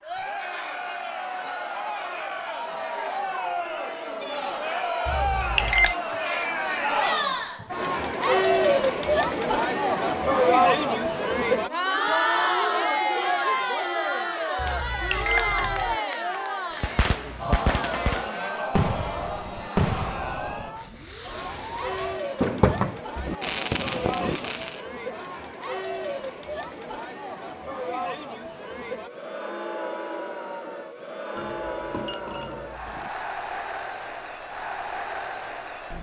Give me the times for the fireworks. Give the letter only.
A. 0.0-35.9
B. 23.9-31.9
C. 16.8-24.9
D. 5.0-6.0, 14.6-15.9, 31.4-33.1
C.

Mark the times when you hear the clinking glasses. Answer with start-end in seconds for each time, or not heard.
5.0-6.0, 14.6-15.9, 31.4-33.1.